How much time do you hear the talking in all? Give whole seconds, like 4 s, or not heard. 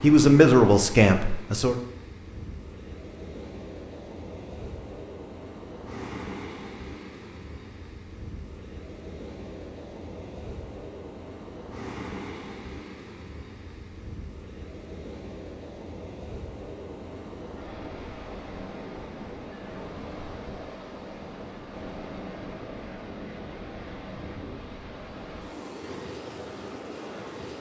2 s.